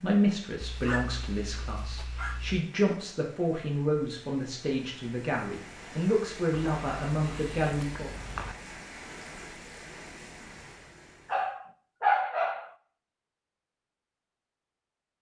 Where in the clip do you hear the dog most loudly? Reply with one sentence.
The loudest moment of the dog is at 12 seconds.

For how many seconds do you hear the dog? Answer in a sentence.
You can hear the dog for 5 seconds altogether.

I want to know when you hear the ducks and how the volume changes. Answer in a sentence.
You can't hear the ducks here.